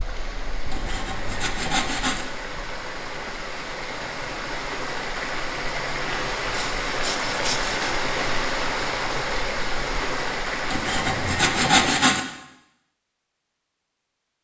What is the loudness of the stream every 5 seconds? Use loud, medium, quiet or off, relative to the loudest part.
medium, loud, loud.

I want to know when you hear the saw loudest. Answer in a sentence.
The loudest moment of the saw is at 12 seconds.